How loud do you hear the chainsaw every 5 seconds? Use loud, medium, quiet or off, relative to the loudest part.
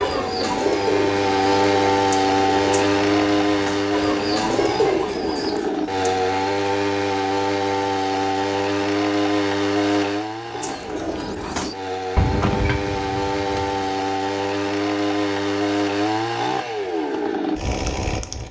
loud, loud, medium, loud.